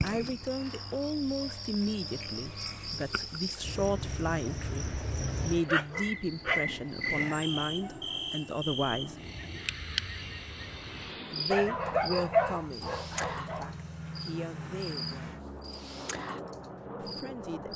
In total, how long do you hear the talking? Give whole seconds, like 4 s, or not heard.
14 s.